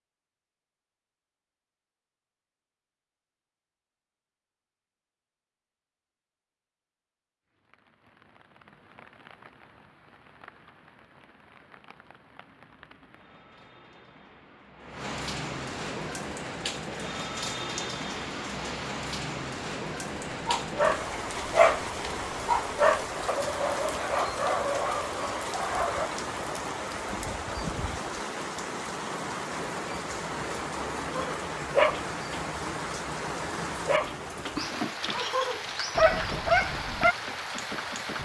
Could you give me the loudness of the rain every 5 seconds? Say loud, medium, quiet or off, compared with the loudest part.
off, quiet, quiet, loud, loud, loud, loud, loud.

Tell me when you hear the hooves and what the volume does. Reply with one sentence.
You can't hear the hooves here.